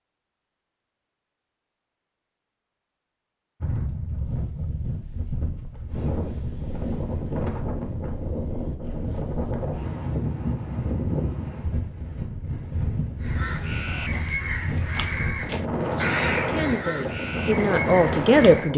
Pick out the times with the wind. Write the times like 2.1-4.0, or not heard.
3.6-18.7.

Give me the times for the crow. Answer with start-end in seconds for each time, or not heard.
13.2-18.7.